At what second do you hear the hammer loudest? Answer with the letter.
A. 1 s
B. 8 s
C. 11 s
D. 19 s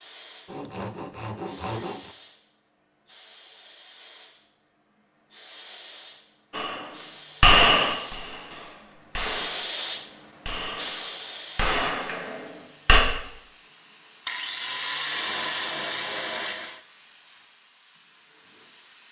B.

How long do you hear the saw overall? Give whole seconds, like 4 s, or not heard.
4 s.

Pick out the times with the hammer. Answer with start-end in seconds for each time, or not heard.
6.5-13.0.